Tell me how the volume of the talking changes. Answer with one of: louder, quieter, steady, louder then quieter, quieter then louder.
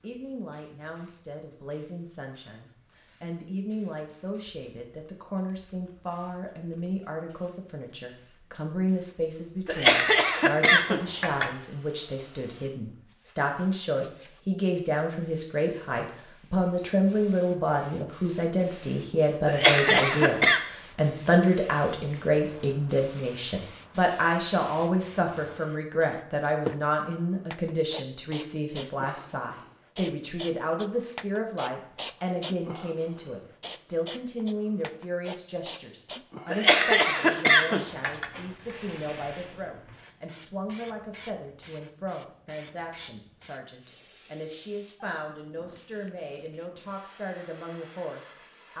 louder then quieter.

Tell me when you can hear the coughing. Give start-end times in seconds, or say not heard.
9.7-11.5, 19.4-20.6, 36.5-38.2.